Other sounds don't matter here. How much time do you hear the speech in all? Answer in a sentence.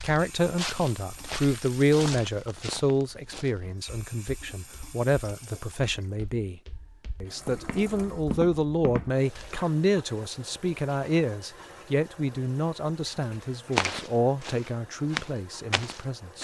The speech can be heard for 16 seconds in total.